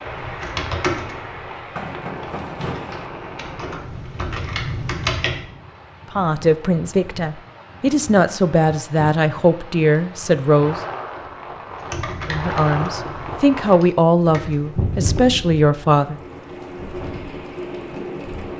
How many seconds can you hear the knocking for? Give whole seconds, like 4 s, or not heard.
2 s.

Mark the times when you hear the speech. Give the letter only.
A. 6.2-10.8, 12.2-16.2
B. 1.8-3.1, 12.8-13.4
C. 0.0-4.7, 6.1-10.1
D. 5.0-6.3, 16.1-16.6
A.